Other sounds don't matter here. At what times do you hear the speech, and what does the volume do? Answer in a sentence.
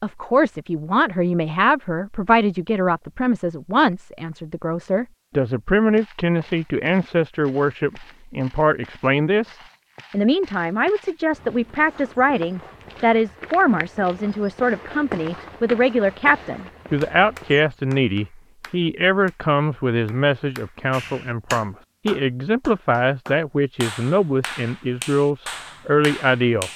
The speech can be heard from 0.0 to 26.7 s, at a steady volume.